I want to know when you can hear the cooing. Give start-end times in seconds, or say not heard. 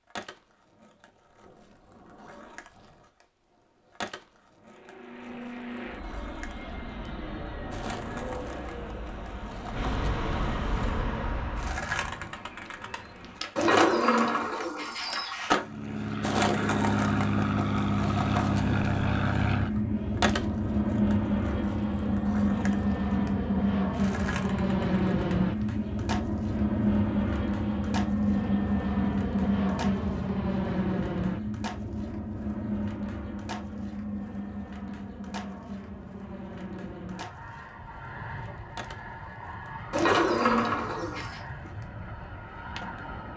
13.6-15.6, 39.9-41.4.